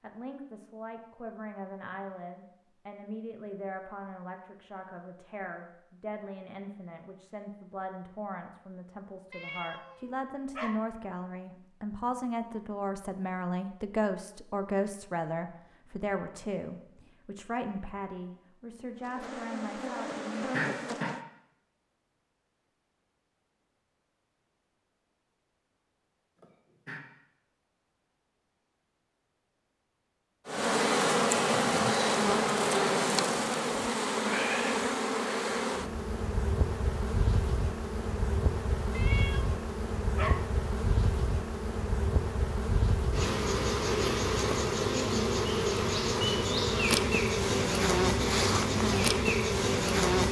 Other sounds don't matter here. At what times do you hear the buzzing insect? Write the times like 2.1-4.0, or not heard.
18.9-21.2, 30.4-50.2.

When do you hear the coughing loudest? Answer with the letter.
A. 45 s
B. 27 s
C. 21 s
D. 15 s
C.